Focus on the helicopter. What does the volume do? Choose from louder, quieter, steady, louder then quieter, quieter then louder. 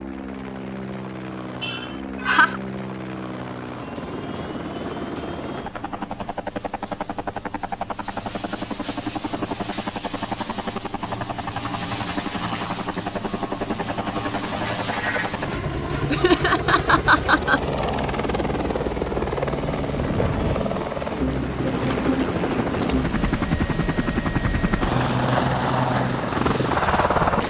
louder.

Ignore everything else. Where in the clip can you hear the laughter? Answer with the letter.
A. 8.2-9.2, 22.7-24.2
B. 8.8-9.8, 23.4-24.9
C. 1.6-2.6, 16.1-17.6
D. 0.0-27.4
C.